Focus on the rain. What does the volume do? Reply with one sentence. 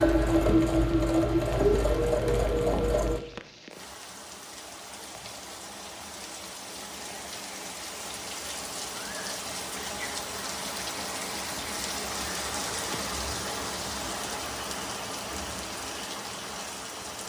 The loudness of the rain goes up.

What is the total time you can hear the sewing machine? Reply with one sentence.
You can hear the sewing machine for 3 seconds altogether.